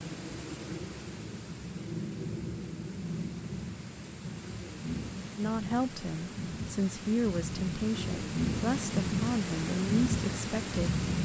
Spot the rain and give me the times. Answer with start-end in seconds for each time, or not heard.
0.0-11.2.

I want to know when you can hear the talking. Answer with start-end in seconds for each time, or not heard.
5.3-10.9.